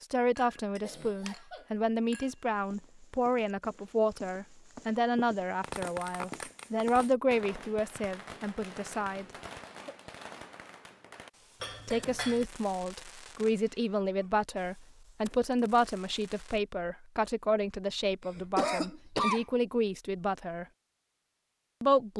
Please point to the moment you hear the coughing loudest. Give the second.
19 s.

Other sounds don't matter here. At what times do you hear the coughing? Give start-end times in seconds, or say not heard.
0.8-1.7, 9.6-10.1, 18.2-19.4.